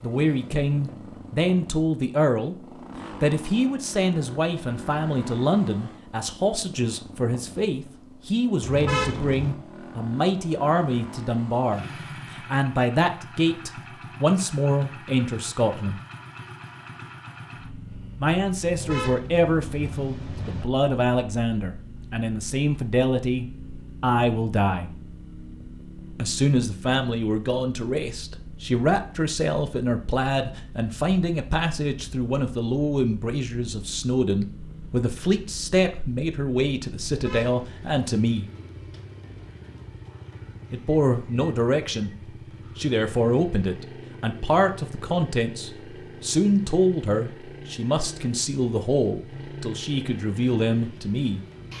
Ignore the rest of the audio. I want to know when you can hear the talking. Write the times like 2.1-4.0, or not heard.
0.0-2.5, 3.2-16.0, 18.1-24.9, 26.1-38.5, 40.7-42.1, 42.8-51.4.